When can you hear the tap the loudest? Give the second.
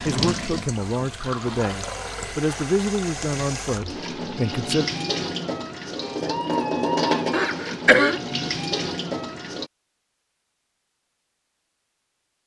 7 s.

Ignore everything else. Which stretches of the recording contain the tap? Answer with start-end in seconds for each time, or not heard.
0.0-9.7.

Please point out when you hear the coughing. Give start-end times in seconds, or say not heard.
7.3-8.2.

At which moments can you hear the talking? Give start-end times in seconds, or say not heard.
0.0-4.8.